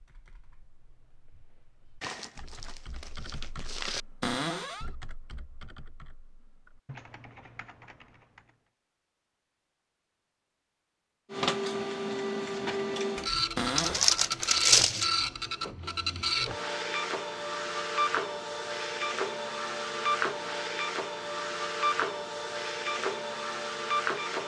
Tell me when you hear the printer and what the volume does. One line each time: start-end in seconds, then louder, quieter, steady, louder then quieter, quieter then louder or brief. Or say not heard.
11.3-24.4 steady.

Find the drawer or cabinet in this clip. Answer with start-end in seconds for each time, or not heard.
4.2-4.9, 13.6-14.2.